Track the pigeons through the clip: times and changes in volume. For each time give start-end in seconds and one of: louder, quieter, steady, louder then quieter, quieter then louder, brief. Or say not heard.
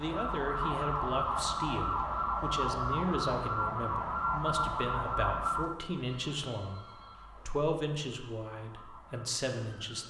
not heard.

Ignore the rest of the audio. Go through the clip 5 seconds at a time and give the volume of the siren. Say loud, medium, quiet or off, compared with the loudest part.
loud, medium.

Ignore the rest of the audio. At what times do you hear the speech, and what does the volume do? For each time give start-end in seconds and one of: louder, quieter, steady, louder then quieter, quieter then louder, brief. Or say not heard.
0.0-6.8 steady
7.5-10.0 brief.